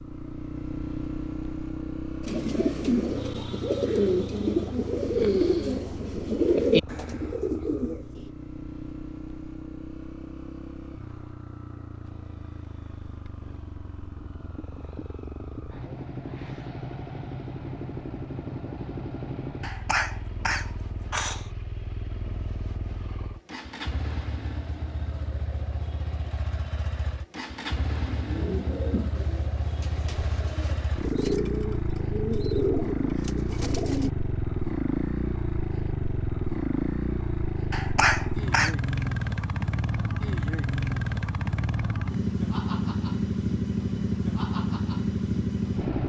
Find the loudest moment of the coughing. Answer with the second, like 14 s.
38 s.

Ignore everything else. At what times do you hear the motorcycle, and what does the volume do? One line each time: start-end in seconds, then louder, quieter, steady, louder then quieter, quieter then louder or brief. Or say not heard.
0.0-46.0 louder.